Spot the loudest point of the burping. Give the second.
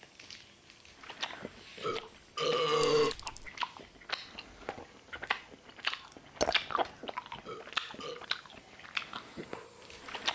3 s.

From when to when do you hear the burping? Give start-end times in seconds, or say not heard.
1.2-3.1, 6.8-8.2.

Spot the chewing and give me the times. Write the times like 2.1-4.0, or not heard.
0.0-10.2.